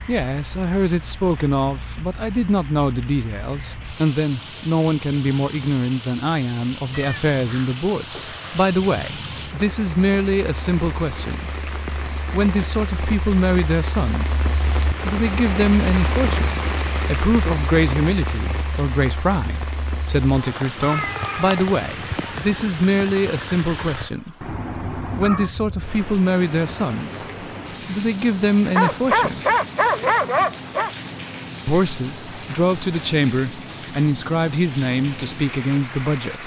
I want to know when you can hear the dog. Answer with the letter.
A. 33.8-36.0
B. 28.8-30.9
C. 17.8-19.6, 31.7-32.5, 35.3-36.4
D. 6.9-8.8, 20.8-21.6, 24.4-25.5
B.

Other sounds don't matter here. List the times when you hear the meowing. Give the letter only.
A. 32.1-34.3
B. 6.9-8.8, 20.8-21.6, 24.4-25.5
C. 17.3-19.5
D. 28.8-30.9
B.